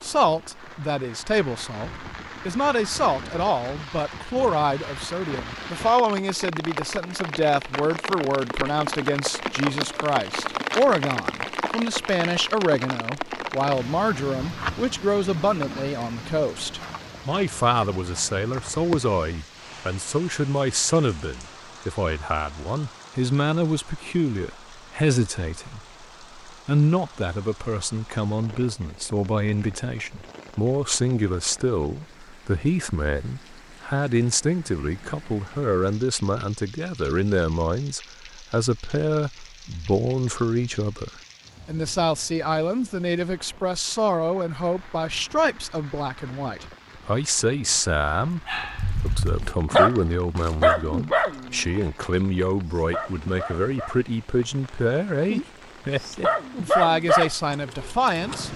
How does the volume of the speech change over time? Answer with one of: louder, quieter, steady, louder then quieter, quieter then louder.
steady.